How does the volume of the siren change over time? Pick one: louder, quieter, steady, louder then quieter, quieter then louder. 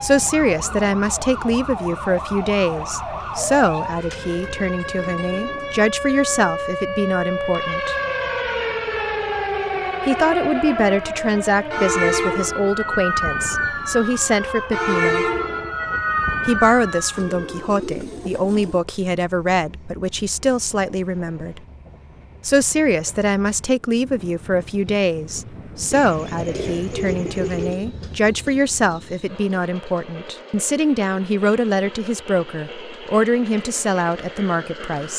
louder.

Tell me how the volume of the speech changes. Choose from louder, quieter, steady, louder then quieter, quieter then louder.
steady.